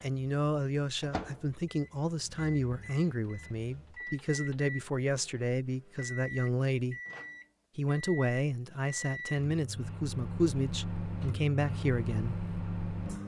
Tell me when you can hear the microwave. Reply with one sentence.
The microwave can be heard from 0.0 to 13.2 s.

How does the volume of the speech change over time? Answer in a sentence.
The loudness of the speech stays about the same.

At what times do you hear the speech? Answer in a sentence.
The speech can be heard from 0.0 to 7.0 s and from 7.8 to 12.3 s.